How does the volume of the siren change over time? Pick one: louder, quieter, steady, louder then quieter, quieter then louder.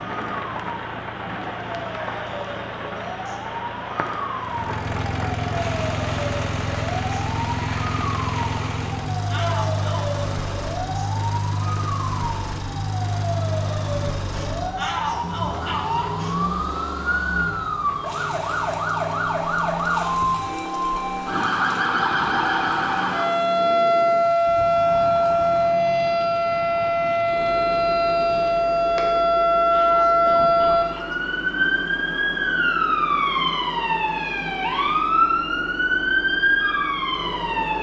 louder.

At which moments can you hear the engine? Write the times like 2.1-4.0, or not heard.
4.4-37.7.